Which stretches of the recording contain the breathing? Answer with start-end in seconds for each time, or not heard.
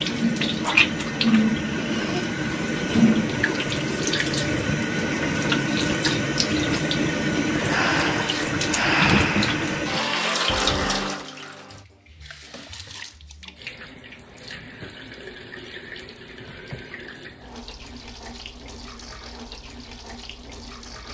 7.7-9.8.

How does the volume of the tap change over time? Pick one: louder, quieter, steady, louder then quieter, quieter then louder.
quieter.